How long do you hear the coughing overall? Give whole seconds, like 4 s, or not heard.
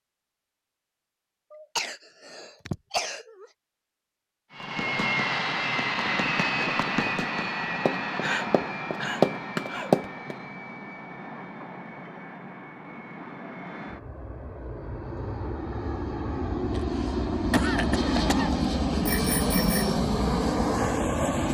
6 s.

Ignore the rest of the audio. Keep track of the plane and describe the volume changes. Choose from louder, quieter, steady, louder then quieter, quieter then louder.
quieter then louder.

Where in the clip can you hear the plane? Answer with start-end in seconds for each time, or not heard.
4.5-21.4.